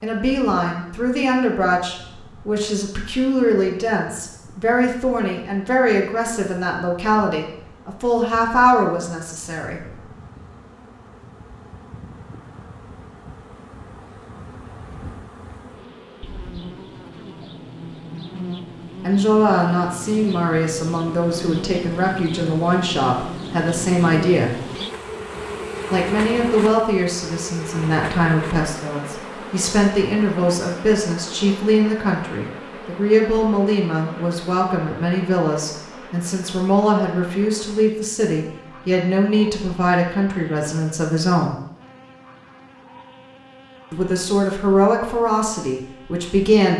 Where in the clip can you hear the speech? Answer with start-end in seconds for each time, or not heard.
0.0-9.9, 19.0-24.6, 25.9-41.5, 43.9-46.7.